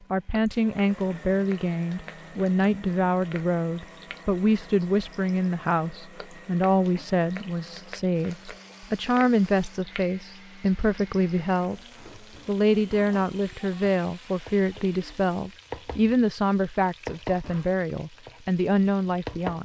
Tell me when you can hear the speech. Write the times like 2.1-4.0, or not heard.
0.1-11.8, 12.4-19.6.